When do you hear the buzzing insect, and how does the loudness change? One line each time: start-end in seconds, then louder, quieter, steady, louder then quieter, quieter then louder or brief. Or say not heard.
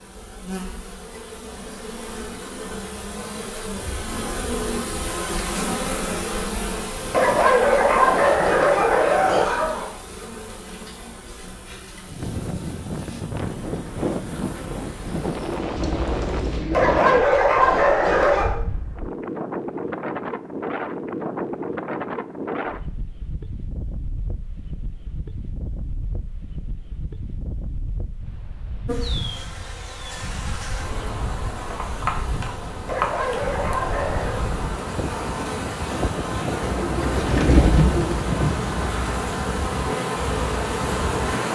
0.0-16.6 louder then quieter
28.9-41.5 louder.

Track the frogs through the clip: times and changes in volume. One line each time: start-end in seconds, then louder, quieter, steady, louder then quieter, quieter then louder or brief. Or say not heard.
not heard.